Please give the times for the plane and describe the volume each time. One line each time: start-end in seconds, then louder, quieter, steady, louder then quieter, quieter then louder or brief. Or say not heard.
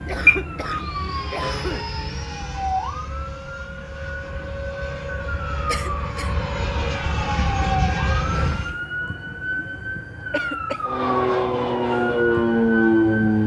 0.0-8.8 louder
10.8-13.4 brief.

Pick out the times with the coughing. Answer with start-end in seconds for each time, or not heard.
0.1-1.9, 5.7-6.3, 10.3-10.8.